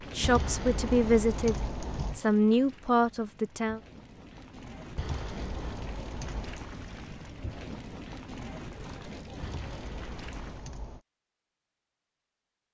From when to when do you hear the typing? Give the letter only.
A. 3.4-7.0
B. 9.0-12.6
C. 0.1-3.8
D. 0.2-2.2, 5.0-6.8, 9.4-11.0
D.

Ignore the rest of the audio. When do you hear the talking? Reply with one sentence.
You can hear the talking from 0.1 to 3.8 s.